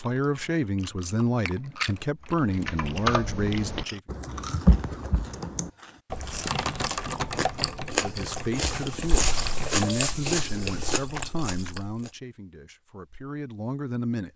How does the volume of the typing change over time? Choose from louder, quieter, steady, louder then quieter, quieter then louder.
quieter.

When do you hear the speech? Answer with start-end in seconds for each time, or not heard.
0.0-4.0, 7.8-14.3.